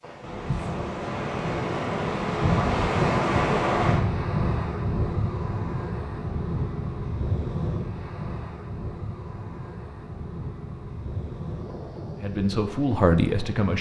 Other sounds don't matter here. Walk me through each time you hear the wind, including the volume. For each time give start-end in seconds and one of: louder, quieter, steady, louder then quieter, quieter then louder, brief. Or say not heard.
0.0-13.7 quieter.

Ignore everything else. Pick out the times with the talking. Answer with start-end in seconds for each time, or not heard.
12.2-13.7.